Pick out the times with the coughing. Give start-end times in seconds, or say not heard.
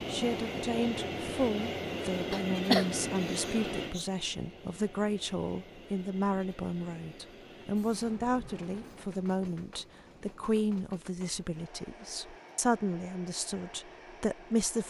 2.3-4.0.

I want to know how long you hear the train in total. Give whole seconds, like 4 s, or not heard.
15 s.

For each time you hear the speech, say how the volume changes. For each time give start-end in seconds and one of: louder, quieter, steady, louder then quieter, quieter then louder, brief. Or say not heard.
0.1-14.8 steady.